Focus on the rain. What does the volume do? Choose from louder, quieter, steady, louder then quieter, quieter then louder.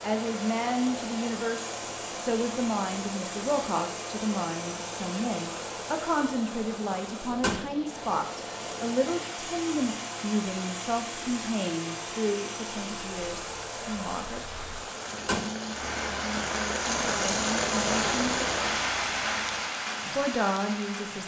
louder.